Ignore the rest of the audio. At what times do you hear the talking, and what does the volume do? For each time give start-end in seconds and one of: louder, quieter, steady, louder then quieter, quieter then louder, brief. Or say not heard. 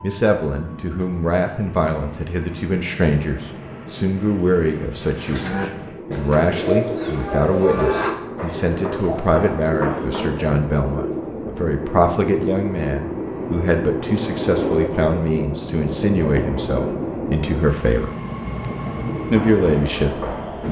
0.0-18.1 steady
19.3-20.6 brief.